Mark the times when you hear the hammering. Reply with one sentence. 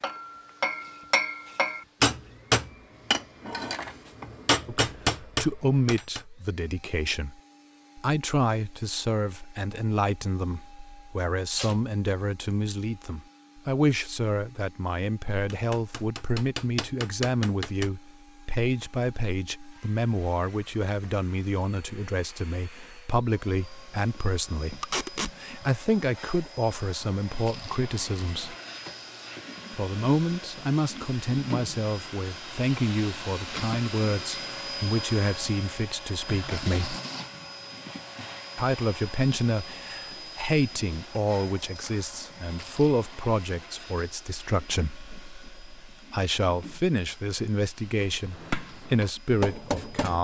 The hammering can be heard from 0.0 to 6.2 s, from 15.5 to 17.9 s and from 48.0 to 50.1 s.